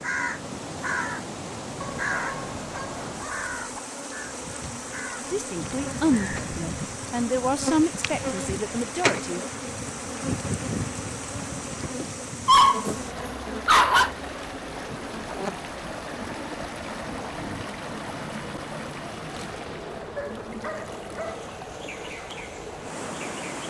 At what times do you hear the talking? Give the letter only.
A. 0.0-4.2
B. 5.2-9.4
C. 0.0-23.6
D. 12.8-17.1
B.